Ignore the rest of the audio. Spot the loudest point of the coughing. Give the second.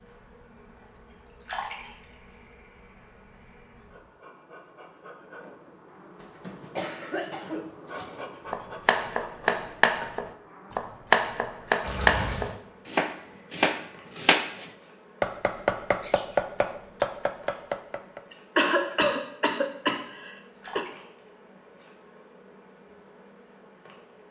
19 s.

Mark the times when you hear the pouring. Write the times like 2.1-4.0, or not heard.
1.2-2.1, 11.8-12.6, 20.4-21.3.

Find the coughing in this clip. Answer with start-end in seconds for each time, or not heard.
6.2-7.7, 18.3-20.9.